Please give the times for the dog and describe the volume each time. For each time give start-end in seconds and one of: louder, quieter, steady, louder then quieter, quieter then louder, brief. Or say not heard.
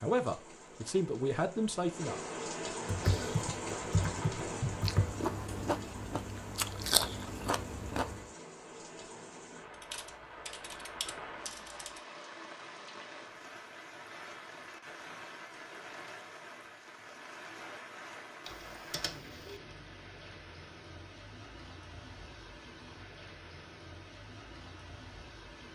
not heard.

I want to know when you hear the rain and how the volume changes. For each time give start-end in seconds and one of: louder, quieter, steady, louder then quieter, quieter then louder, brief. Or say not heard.
0.0-25.6 quieter.